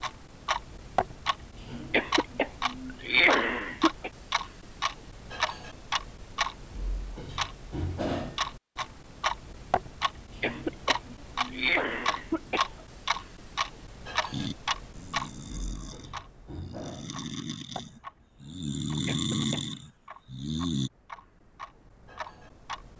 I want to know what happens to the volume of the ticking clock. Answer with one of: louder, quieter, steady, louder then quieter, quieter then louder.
quieter.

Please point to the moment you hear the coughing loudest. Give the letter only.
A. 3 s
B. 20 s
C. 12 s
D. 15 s
A.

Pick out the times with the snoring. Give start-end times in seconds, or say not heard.
14.3-20.9.